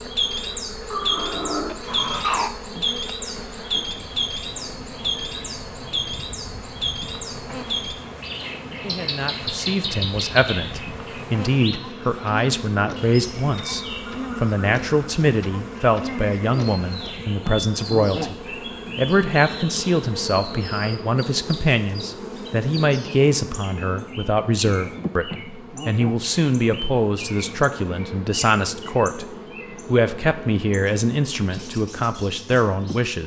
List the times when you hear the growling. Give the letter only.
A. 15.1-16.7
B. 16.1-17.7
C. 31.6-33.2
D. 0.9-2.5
D.